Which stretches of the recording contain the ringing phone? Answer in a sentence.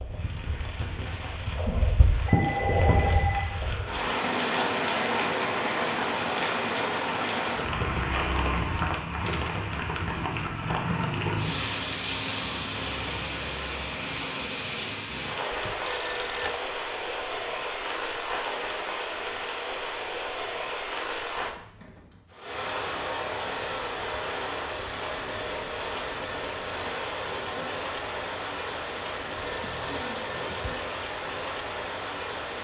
The ringing phone can be heard from 2.2 to 3.6 s, from 15.5 to 16.6 s and from 29.4 to 30.8 s.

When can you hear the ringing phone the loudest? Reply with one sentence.
The loudest moment of the ringing phone is at 3 seconds.